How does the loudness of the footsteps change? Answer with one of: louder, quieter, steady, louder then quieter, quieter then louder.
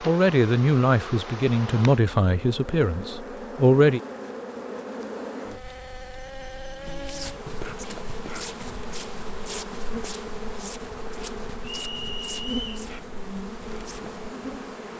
quieter.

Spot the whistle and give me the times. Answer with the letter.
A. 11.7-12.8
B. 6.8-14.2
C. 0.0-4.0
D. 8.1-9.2
A.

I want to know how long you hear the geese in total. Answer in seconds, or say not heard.
not heard.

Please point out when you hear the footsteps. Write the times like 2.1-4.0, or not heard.
6.8-14.2.